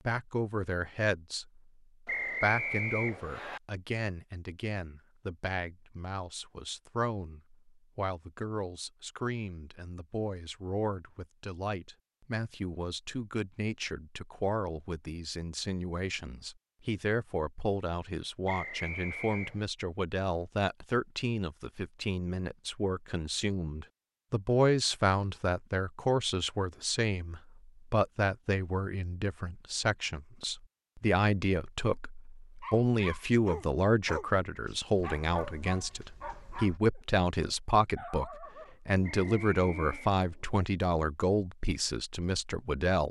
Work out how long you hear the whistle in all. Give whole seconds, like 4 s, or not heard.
4 s.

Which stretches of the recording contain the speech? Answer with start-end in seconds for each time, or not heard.
0.1-1.6, 2.4-43.0.